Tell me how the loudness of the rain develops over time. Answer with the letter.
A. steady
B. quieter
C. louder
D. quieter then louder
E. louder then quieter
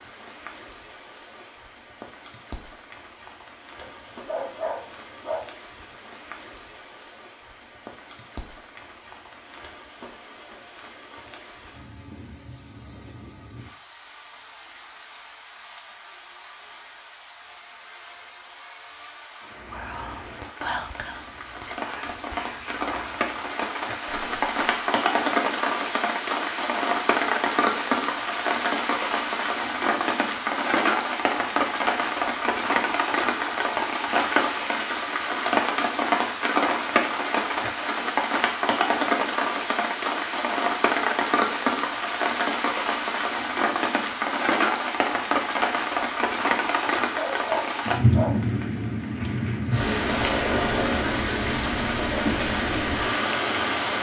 C.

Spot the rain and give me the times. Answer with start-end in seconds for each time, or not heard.
0.0-53.9.